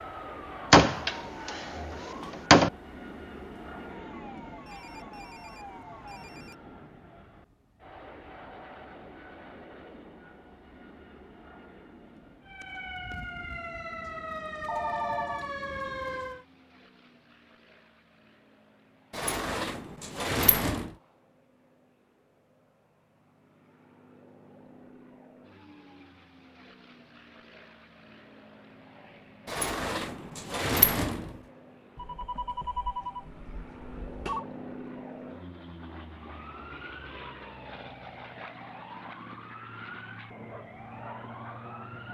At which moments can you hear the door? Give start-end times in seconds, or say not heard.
0.7-2.7, 19.1-20.9, 29.4-31.3.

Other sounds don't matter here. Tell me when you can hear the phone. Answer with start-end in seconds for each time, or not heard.
4.7-6.5, 14.7-15.5, 31.9-34.5.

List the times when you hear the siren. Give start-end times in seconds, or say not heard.
0.0-6.4, 12.4-16.4, 36.4-42.0.